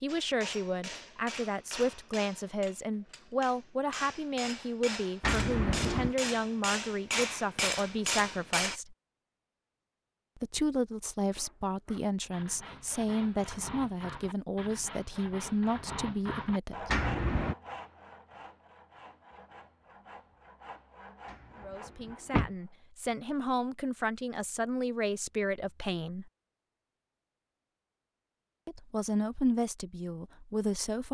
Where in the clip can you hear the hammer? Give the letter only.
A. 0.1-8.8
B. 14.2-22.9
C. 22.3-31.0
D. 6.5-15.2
A.